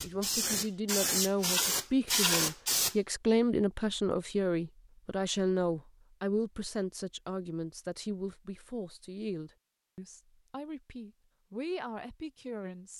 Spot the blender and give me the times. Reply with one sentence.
The blender can't be heard in this clip.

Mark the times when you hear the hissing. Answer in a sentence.
The hissing can be heard from 0.0 to 3.0 s.